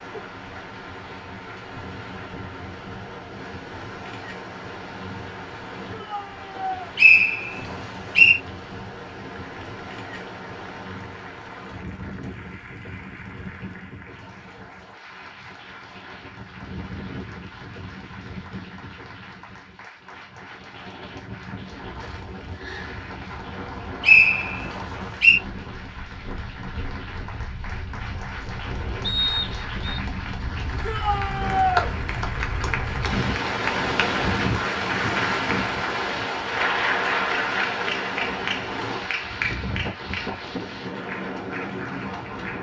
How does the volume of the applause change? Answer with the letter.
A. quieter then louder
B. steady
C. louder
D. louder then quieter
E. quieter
C.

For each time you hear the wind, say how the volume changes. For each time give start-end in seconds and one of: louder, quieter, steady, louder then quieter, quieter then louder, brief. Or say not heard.
0.0-42.5 louder.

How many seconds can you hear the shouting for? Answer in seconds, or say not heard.
2 s.